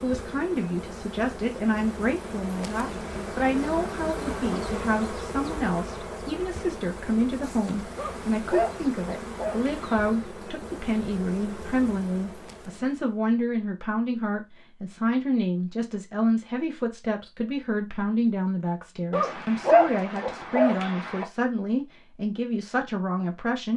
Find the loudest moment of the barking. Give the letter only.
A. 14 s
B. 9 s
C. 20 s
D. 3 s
C.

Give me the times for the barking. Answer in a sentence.
The barking can be heard from 8.0 to 10.1 s and from 19.1 to 21.2 s.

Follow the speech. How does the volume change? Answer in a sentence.
The loudness of the speech stays about the same.